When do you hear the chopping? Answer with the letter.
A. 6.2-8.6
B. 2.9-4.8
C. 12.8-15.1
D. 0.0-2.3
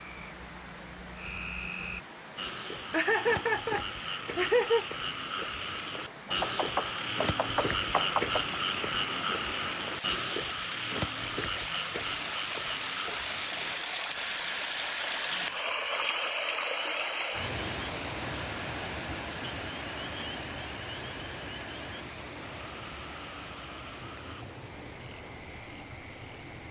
A.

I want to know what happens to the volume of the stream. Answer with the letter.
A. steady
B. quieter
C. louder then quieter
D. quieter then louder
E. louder
C.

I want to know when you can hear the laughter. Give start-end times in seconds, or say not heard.
2.9-4.8.